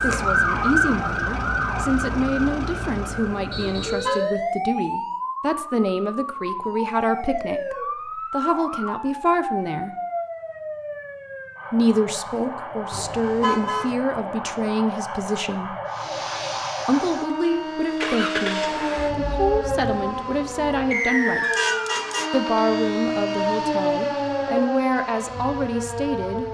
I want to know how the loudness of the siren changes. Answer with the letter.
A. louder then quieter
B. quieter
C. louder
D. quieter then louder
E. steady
D.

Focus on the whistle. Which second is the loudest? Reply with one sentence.
The loudest moment of the whistle is at 21 seconds.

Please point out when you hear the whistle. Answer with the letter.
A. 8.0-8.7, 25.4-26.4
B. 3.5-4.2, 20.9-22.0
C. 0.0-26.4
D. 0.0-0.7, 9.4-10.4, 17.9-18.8
B.